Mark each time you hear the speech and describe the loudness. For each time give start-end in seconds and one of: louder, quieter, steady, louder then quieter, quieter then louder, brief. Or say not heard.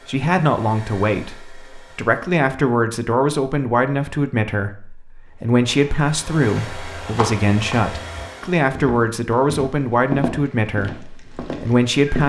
0.1-12.2 steady.